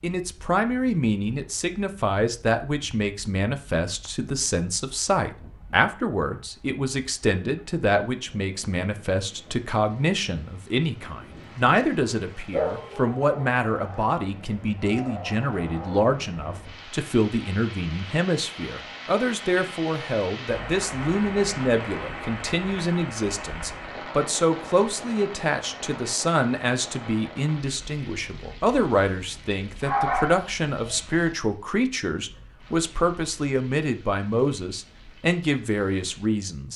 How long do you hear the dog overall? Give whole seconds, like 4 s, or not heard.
2 s.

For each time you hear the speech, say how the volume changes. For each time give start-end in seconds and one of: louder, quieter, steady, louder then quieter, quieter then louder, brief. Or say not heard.
0.0-36.7 steady.